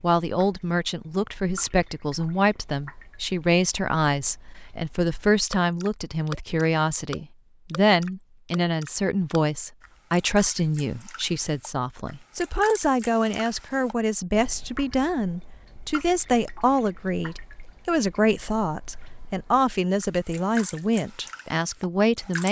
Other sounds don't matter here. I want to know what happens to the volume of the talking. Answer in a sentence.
The loudness of the talking stays about the same.